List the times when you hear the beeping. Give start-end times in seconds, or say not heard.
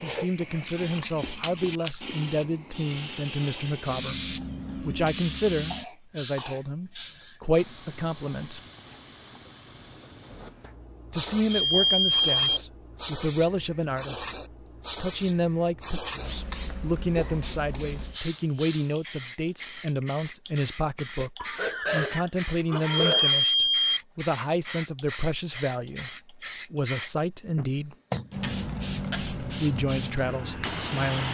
11.5-12.6, 22.9-24.0.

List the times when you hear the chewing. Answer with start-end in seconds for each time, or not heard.
0.0-2.1.